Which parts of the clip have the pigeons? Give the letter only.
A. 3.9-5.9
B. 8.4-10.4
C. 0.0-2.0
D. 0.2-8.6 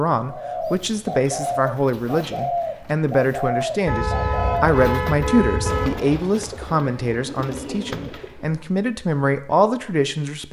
D.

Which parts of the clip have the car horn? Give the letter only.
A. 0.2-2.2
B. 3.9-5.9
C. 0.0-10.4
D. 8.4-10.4
B.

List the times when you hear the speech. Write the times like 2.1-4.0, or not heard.
0.0-10.4.